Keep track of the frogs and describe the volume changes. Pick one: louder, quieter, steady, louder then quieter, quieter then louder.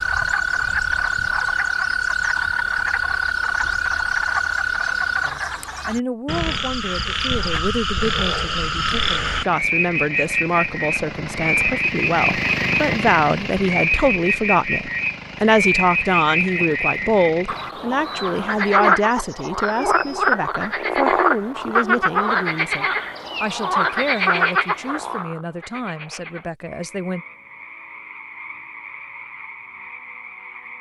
quieter.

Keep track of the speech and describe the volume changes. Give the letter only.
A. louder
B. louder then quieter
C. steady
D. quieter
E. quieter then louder
B.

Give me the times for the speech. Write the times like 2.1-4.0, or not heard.
5.2-27.2.